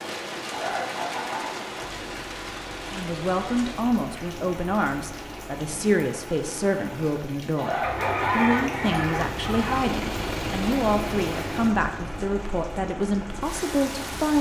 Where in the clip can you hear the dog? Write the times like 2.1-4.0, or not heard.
7.9-9.2.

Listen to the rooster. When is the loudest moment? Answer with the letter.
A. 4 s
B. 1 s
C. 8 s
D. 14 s
C.